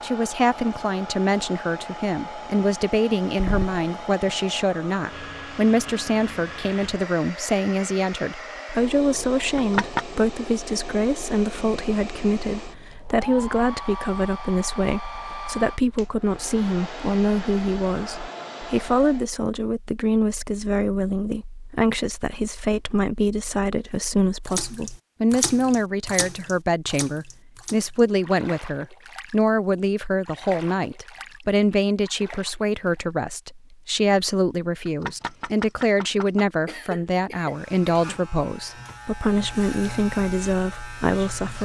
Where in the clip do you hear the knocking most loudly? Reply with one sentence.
The loudest moment of the knocking is at 10 seconds.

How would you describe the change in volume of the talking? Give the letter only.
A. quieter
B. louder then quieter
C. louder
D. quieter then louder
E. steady
E.